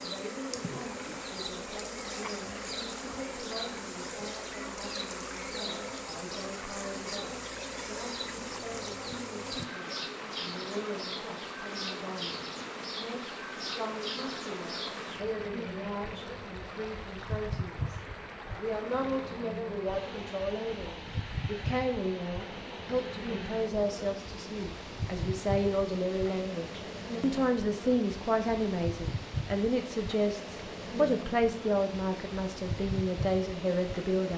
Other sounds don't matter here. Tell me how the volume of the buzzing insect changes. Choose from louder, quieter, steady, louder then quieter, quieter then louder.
steady.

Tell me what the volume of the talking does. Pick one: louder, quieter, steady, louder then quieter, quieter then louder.
louder.